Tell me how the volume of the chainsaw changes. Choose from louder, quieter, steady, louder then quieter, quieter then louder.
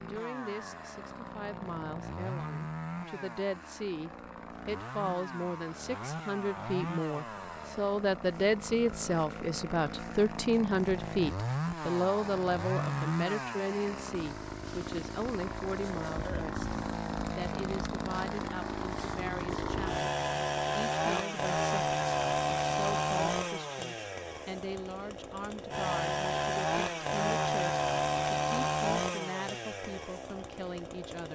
louder.